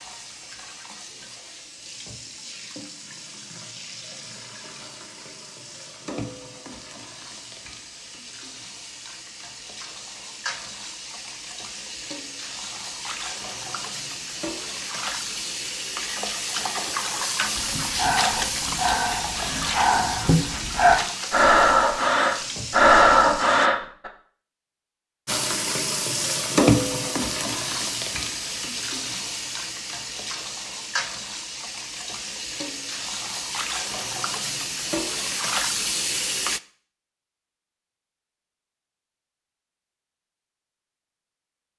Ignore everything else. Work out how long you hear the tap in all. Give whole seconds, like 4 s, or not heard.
35 s.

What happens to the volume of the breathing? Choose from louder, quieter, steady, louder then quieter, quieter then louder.
louder.